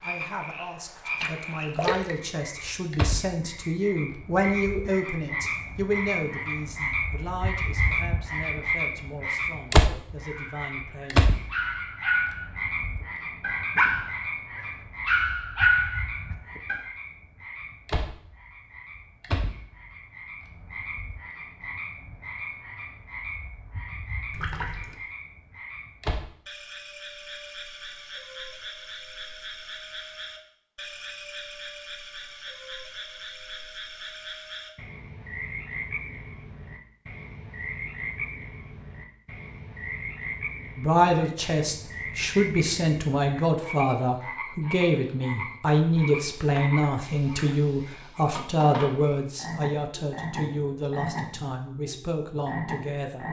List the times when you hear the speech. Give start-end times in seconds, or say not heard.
0.0-11.3, 40.8-53.2.